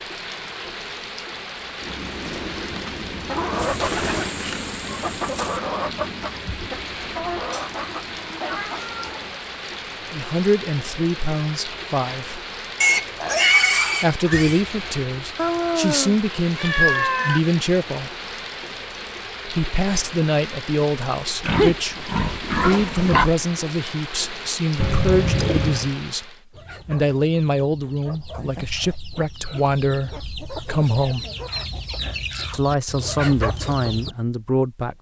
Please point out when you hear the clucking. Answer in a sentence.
You can hear the clucking from 1.8 to 9.4 s and from 26.5 to 34.1 s.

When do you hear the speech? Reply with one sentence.
You can hear the speech from 10.1 to 12.4 s, from 14.0 to 18.1 s, from 19.4 to 31.2 s and from 32.5 to 34.9 s.